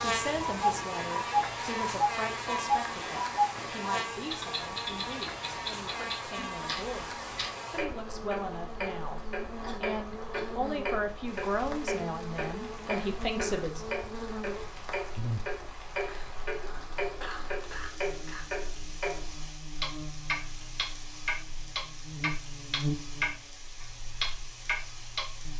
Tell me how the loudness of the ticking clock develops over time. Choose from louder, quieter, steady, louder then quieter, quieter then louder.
quieter then louder.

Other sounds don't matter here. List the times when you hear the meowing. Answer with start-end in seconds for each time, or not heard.
not heard.